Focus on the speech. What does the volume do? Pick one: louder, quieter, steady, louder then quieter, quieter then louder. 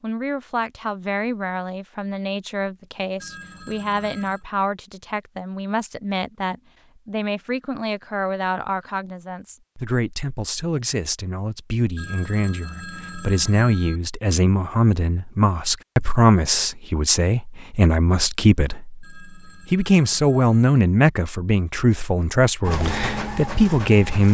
louder.